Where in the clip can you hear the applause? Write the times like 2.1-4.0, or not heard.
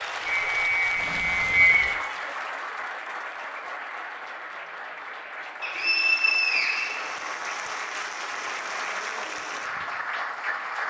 0.0-10.8.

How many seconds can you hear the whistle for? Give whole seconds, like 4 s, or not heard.
3 s.